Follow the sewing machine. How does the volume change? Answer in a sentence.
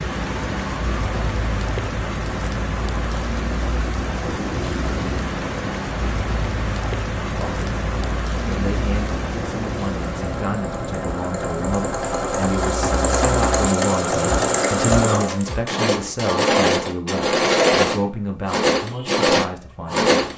The loudness of the sewing machine goes up.